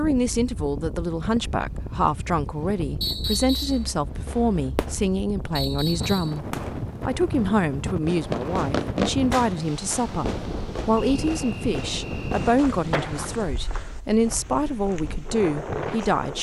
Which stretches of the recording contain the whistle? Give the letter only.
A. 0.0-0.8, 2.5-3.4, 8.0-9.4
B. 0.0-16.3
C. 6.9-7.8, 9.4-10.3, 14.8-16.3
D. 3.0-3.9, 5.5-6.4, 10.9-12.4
D.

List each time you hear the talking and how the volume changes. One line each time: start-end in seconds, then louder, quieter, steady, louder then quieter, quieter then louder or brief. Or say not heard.
0.0-16.3 steady.